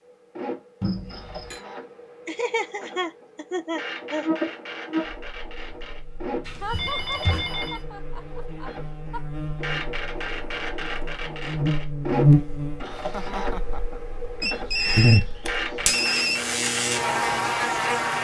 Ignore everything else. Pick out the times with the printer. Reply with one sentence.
You can hear the printer from 0.0 to 18.2 s.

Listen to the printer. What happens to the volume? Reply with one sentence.
The loudness of the printer goes up.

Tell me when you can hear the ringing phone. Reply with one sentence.
You can hear the ringing phone from 0.8 to 1.6 s, from 6.5 to 7.8 s and from 14.4 to 16.4 s.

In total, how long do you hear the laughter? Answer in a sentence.
You can hear the laughter for 6 seconds altogether.